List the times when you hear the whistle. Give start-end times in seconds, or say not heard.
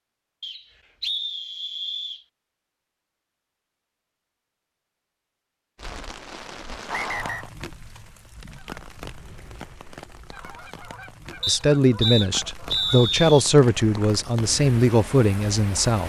0.4-2.2, 6.9-7.5, 11.4-13.4.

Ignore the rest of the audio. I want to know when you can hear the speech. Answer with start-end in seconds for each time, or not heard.
11.4-16.0.